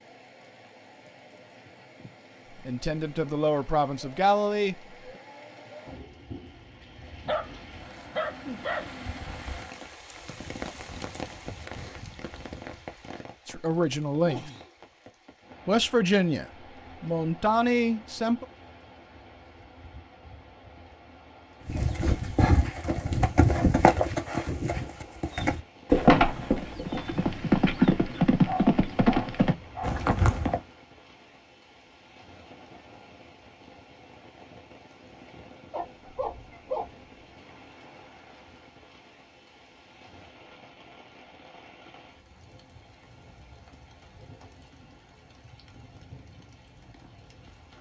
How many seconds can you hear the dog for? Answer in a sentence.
The dog can be heard for 5 seconds in total.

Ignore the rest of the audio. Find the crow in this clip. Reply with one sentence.
The crow can't be heard in this clip.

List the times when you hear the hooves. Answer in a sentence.
The hooves can be heard from 21.6 to 30.6 s.